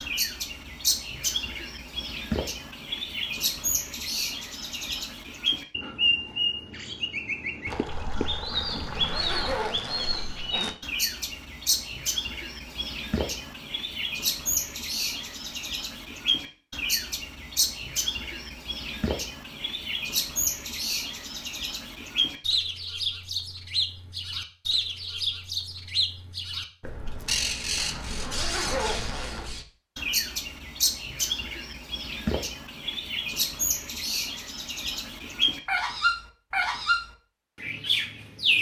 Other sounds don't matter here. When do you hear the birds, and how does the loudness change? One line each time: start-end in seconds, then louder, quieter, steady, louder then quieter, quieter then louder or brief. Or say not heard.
0.0-38.5 steady.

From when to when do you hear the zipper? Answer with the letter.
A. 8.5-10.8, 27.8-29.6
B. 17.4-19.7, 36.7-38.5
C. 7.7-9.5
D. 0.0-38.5
A.